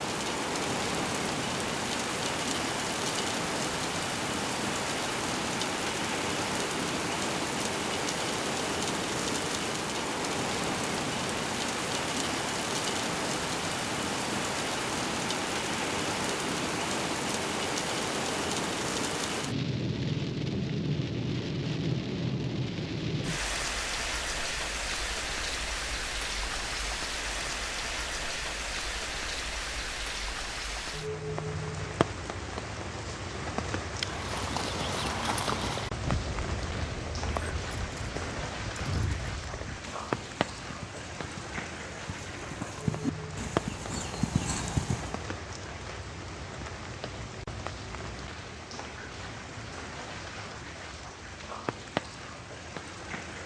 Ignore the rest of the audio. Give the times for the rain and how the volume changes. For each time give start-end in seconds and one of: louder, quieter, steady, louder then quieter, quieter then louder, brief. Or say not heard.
0.0-53.4 quieter.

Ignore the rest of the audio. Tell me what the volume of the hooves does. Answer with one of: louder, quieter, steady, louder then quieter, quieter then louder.
quieter then louder.